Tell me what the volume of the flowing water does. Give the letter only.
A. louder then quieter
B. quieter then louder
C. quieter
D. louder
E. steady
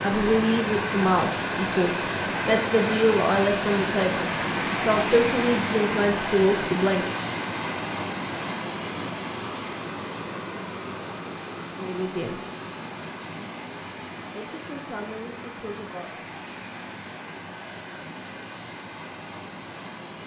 C.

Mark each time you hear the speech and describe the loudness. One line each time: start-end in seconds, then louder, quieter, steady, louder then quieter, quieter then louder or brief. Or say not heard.
0.0-7.2 steady
11.8-12.4 brief
14.3-16.2 brief.